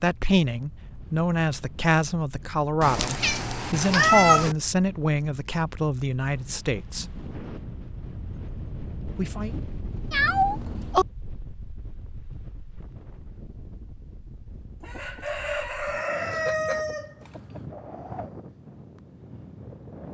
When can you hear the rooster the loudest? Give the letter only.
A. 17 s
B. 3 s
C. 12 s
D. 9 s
A.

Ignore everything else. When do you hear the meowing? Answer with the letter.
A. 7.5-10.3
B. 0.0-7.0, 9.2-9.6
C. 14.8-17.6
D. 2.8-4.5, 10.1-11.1
D.